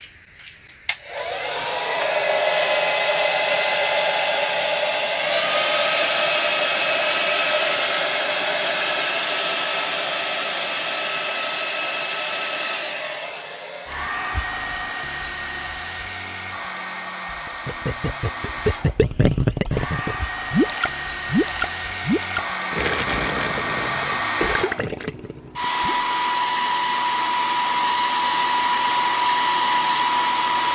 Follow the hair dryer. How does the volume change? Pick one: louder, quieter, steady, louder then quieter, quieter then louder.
quieter then louder.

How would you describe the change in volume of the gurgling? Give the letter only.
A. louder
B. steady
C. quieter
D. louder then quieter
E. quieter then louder
C.